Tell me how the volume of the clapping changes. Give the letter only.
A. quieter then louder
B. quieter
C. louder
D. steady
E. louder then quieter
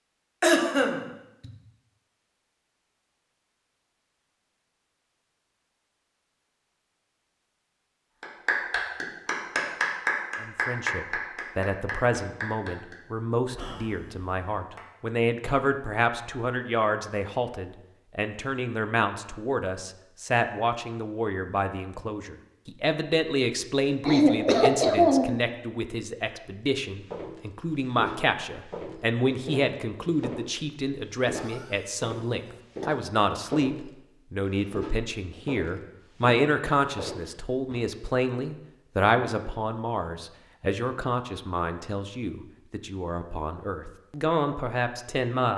B.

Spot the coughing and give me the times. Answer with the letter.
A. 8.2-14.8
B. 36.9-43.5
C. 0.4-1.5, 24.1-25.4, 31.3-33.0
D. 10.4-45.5
C.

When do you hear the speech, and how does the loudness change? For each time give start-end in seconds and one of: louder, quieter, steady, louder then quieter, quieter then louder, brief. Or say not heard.
10.4-45.5 steady.